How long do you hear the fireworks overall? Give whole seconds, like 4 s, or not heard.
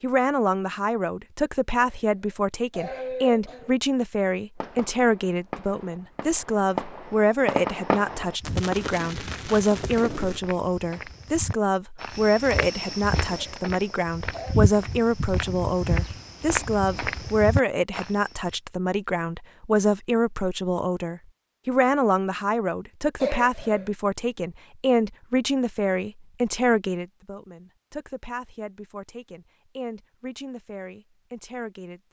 6 s.